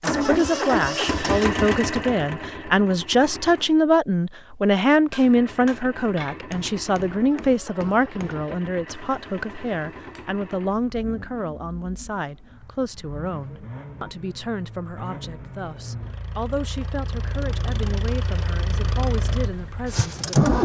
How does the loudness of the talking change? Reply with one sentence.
The loudness of the talking goes down.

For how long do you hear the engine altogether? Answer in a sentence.
The engine can be heard for 19 seconds in total.